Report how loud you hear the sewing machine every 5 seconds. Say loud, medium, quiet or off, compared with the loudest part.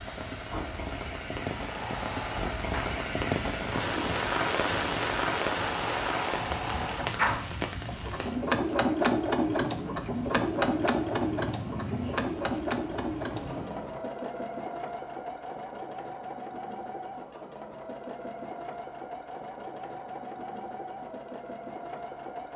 medium, loud, loud, medium, medium.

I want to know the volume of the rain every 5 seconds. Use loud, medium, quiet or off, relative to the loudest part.
loud, loud, medium, off, off.